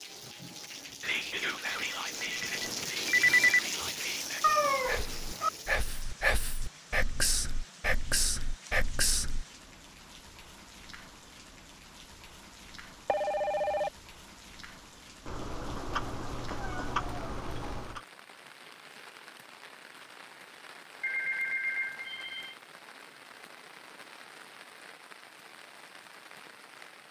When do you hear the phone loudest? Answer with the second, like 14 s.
3 s.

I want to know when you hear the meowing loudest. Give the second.
5 s.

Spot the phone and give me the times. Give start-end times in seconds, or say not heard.
1.6-3.6, 13.1-13.9, 21.0-22.6.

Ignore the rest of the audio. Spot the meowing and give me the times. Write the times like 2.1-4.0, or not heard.
4.4-5.5, 15.2-18.0.